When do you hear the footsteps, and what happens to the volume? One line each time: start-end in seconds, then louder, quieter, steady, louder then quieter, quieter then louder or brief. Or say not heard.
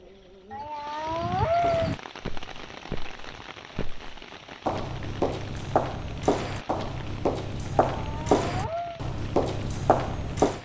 1.6-10.6 louder.